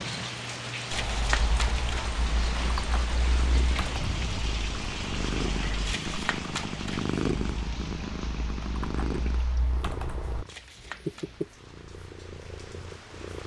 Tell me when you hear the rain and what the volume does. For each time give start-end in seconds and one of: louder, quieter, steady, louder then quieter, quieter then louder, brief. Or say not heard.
0.0-13.4 quieter.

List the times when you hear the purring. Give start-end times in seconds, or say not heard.
0.0-13.4.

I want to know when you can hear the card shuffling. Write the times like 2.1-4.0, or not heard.
0.8-2.1, 5.8-7.2, 10.4-11.3.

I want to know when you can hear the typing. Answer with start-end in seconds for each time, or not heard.
0.9-10.4.